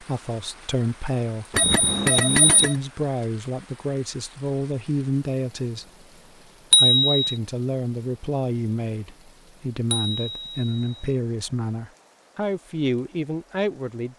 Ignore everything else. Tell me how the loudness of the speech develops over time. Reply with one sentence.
The volume of the speech stays about the same.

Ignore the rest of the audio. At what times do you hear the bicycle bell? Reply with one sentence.
You can hear the bicycle bell from 1.6 to 2.8 s, from 6.7 to 7.3 s and from 9.9 to 11.1 s.